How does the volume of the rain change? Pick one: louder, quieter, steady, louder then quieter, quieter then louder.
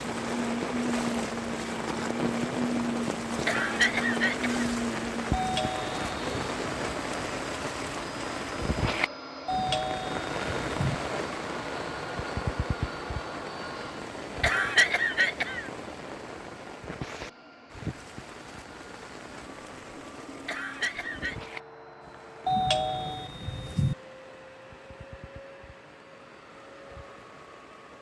quieter.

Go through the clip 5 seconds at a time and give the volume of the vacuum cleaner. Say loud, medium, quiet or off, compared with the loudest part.
loud, medium, medium, quiet, quiet, quiet.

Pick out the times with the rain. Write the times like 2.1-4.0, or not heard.
0.0-27.9.